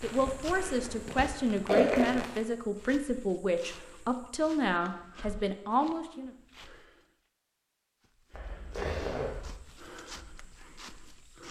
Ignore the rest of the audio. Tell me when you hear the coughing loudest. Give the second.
2 s.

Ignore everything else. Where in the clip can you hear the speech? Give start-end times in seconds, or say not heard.
0.0-6.3.